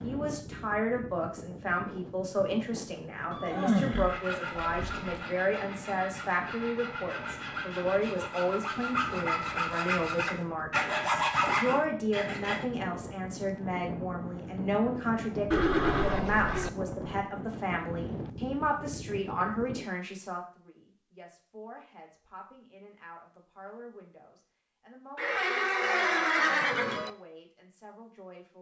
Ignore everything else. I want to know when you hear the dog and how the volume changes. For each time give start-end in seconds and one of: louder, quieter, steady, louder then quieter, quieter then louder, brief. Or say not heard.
not heard.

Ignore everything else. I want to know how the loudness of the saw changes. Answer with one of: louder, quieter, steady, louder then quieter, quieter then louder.
louder.